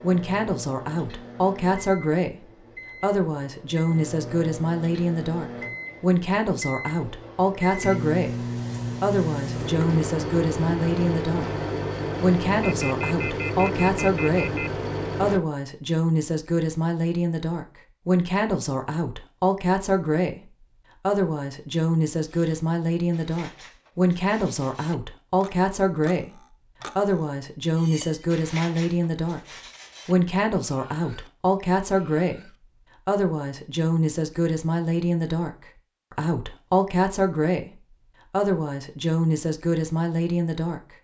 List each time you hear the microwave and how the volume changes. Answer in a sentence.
The microwave can be heard from 0.0 to 15.4 s, getting louder.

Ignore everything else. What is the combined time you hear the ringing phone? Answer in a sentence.
You can hear the ringing phone for 2 seconds altogether.